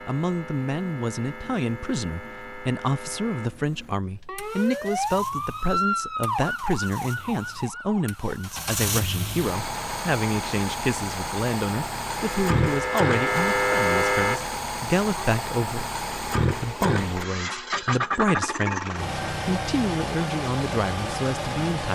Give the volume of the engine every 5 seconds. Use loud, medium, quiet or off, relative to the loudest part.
quiet, medium, loud, loud, loud.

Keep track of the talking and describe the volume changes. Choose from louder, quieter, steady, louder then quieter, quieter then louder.
steady.